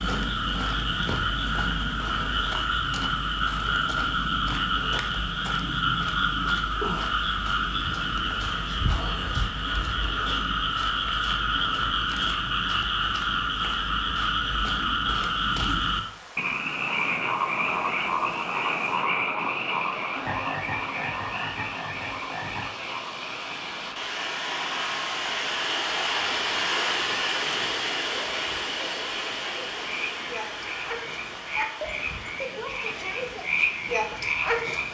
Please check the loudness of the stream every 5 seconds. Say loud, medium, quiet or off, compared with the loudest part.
quiet, quiet, quiet, quiet, medium, loud, medium.